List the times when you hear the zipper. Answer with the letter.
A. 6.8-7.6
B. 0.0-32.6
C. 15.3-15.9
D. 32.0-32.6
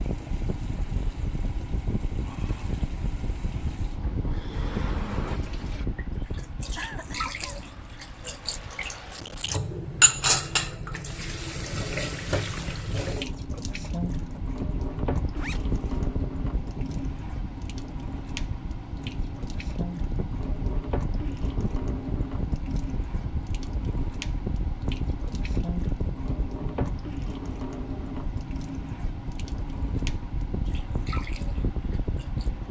C.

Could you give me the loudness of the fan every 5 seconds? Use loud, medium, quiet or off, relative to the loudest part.
loud, medium, medium, loud, loud, loud, loud.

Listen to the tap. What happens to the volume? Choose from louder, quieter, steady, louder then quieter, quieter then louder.
louder then quieter.